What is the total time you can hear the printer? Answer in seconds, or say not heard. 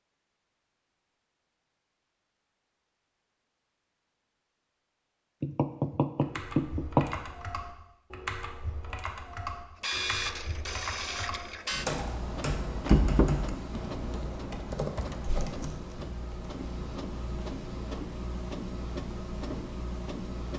11 s.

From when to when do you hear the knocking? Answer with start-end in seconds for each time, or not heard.
5.4-7.1, 12.7-13.5.